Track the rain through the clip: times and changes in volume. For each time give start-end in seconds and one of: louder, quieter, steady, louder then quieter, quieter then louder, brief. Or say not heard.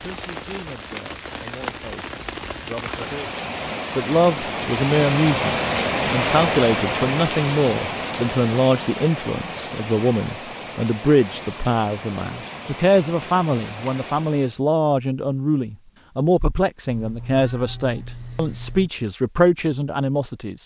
0.0-14.6 louder then quieter.